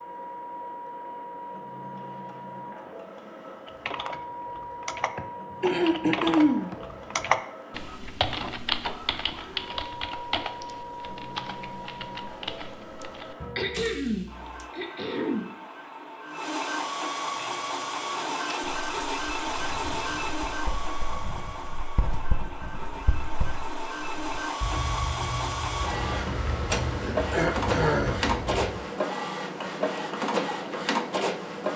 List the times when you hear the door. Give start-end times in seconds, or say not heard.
not heard.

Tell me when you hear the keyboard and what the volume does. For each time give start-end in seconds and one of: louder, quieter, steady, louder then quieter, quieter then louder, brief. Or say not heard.
3.6-14.7 louder then quieter.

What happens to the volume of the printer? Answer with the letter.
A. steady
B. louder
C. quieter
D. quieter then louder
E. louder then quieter
B.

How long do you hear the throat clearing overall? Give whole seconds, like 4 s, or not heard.
5 s.